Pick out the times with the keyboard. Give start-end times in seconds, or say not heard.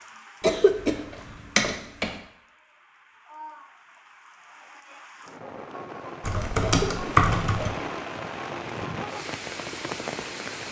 0.7-2.1, 6.2-7.7.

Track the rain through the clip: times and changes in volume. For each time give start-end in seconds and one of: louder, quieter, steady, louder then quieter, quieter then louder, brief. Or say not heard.
0.0-10.6 louder.